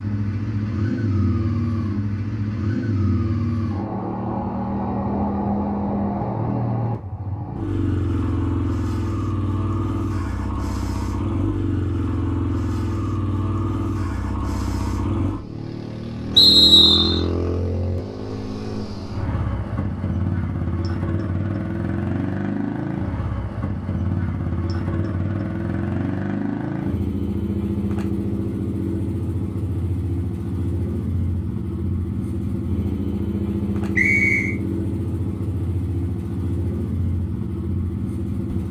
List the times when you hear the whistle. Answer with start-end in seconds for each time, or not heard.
16.4-17.2, 34.0-34.5.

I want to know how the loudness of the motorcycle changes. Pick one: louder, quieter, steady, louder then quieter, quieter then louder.
steady.